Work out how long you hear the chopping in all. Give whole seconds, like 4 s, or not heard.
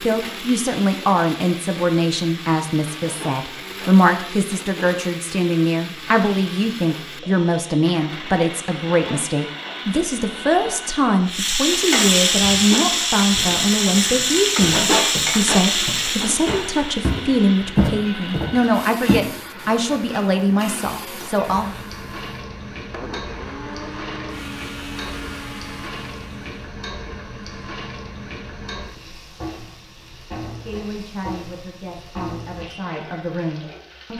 not heard.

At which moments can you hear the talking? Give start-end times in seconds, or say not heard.
0.0-21.8, 30.6-34.1.